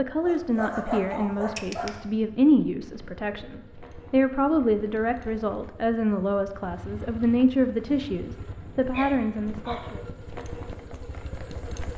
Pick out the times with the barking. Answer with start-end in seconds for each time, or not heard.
0.2-2.0, 7.8-9.9.